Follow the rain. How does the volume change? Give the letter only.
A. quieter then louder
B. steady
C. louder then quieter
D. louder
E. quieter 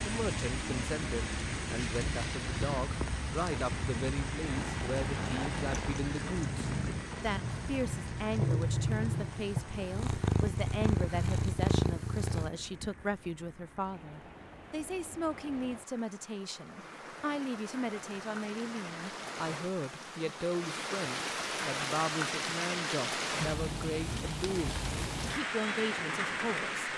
A.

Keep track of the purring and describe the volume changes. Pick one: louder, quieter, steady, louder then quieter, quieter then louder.
louder.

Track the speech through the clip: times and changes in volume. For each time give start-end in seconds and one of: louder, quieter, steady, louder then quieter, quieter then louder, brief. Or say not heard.
0.0-26.7 steady.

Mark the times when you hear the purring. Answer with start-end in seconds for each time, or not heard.
4.5-12.5.